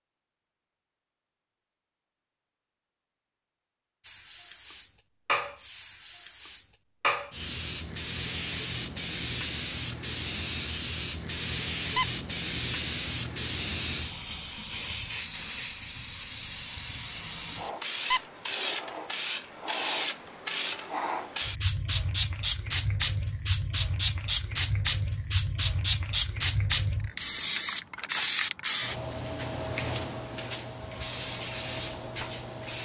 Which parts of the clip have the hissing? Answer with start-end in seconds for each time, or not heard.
4.0-32.7.